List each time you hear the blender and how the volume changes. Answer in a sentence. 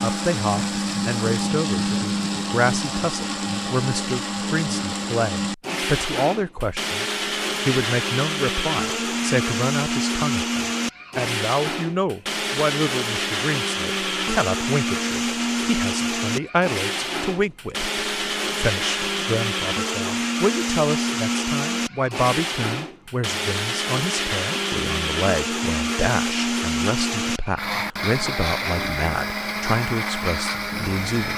The blender can be heard from 0.0 to 31.3 s, at a steady volume.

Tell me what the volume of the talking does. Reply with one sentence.
The volume of the talking stays about the same.